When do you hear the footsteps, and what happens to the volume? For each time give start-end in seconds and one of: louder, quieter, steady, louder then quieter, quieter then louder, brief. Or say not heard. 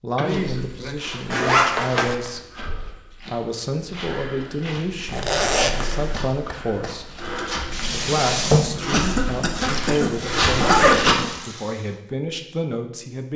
0.2-11.2 louder.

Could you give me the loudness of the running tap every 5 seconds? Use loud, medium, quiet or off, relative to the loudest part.
off, loud, medium.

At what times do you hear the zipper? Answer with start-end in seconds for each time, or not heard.
1.3-2.1, 5.0-6.3, 9.7-11.1.